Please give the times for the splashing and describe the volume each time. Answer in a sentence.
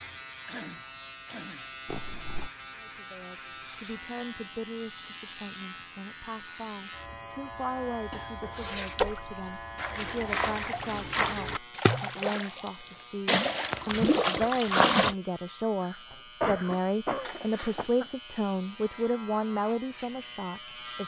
The splashing can be heard from 8.8 to 15.2 s, getting louder.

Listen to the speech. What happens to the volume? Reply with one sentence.
The loudness of the speech goes up.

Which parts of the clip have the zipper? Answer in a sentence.
You can hear the zipper from 1.9 to 2.5 s, from 8.0 to 9.0 s and from 17.2 to 17.9 s.